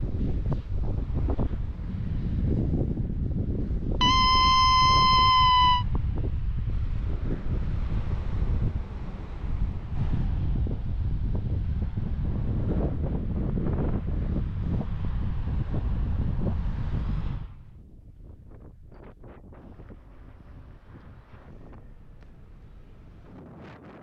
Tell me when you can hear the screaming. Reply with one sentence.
You can hear the screaming from 4.0 to 5.8 s.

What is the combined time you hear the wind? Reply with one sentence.
The wind can be heard for 24 seconds in total.